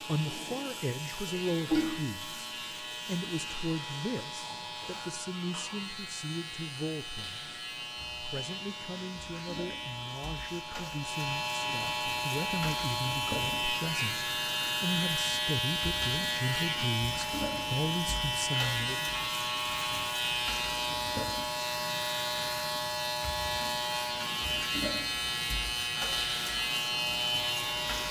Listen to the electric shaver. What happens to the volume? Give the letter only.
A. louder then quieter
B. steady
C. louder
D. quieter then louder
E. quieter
C.